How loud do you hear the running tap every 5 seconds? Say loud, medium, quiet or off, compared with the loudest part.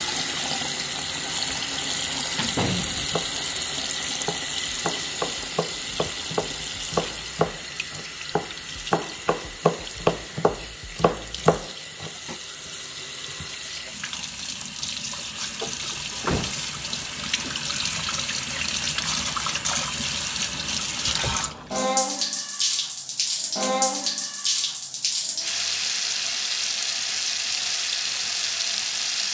loud, medium, medium, loud, loud, loud.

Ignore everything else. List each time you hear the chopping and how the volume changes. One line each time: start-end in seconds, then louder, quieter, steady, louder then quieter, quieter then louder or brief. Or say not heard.
3.0-12.3 louder.